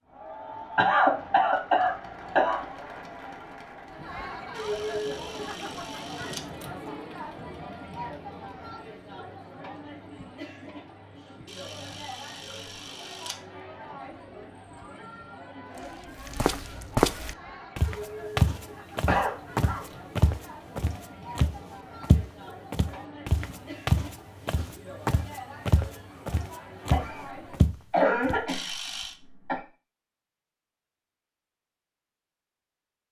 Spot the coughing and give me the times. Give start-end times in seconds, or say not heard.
0.8-2.6, 19.1-19.9, 26.9-29.6.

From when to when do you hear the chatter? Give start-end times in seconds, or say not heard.
0.0-27.6.